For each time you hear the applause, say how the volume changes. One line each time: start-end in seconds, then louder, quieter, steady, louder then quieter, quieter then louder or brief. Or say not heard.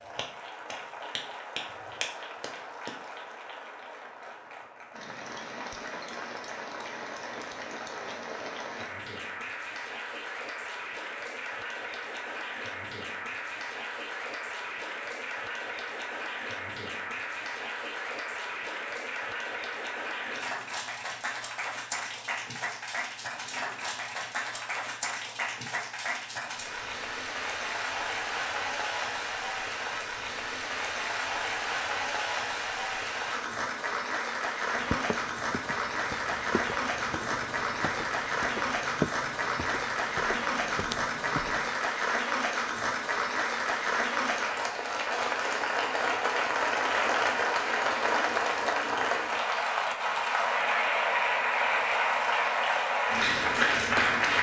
0.0-54.3 louder.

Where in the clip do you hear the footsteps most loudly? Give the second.
39 s.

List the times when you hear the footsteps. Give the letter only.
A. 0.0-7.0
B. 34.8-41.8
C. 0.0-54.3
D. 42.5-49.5
B.